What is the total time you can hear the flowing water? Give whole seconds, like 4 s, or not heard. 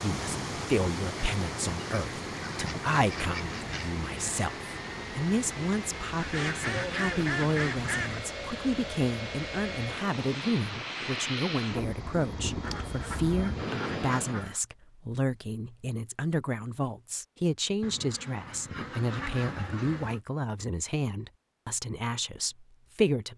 14 s.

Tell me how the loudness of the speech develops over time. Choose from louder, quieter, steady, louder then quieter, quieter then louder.
steady.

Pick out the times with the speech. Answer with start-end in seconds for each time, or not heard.
0.0-23.3.